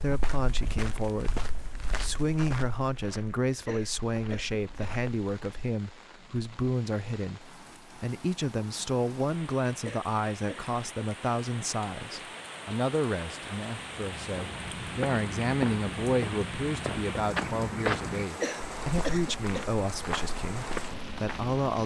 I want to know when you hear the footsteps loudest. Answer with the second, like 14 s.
18 s.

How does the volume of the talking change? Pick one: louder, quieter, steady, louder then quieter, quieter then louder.
steady.